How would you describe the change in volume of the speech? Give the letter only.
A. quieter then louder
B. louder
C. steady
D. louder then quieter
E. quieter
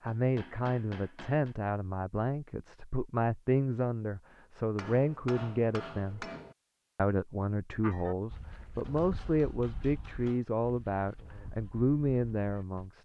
C.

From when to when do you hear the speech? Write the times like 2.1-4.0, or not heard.
0.0-6.2, 7.0-12.9.